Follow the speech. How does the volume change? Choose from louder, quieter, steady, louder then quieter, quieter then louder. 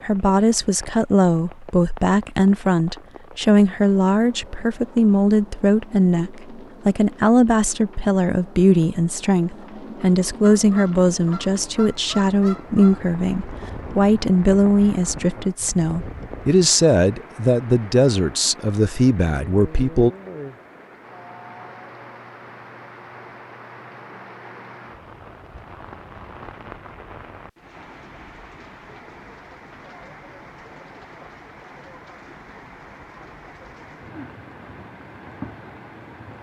steady.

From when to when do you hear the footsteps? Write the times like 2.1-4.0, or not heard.
not heard.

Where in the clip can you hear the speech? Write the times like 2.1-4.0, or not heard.
0.0-20.1.